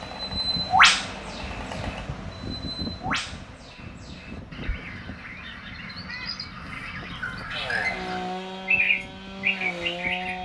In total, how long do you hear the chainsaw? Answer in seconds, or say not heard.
5 s.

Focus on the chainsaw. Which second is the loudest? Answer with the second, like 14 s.
8 s.